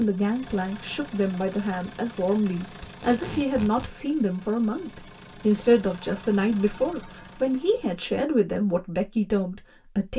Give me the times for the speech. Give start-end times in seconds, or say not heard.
0.0-10.1.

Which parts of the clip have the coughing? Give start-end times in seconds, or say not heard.
not heard.